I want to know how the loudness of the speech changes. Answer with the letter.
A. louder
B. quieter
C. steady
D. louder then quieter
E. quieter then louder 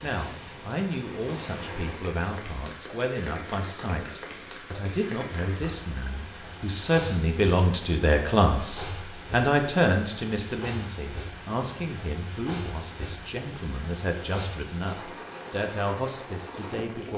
D.